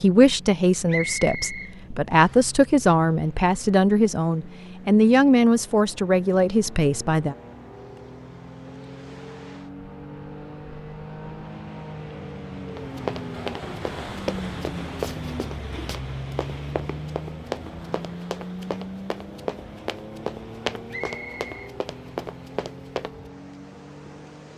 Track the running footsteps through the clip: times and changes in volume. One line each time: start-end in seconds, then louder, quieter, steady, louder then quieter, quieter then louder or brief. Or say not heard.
12.7-23.1 steady.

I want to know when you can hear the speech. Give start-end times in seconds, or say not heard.
0.0-7.3.